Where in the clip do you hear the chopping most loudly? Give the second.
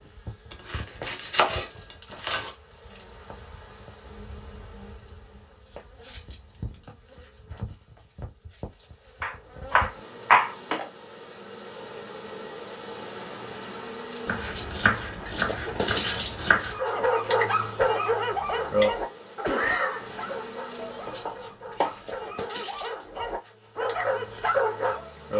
10 s.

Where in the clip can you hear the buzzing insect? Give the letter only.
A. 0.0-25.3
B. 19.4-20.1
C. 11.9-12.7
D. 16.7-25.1
A.